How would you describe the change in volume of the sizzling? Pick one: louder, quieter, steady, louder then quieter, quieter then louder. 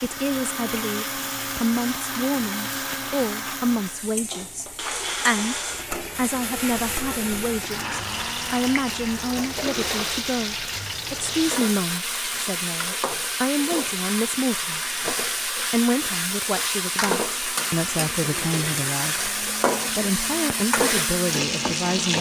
louder.